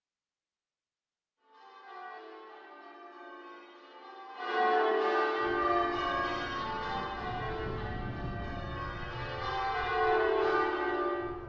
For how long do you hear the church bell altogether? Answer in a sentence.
You can hear the church bell for 10 seconds altogether.